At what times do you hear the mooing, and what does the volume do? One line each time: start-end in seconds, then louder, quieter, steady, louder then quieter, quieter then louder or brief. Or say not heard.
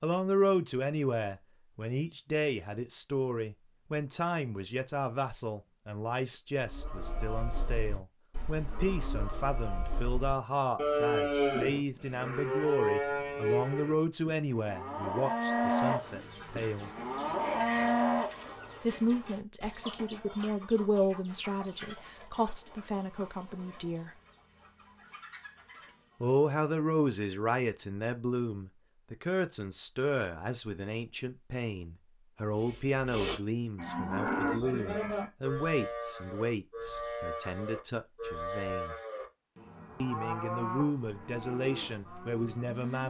6.6-18.5 louder
32.5-43.0 quieter.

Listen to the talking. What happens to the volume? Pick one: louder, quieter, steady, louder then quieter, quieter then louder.
steady.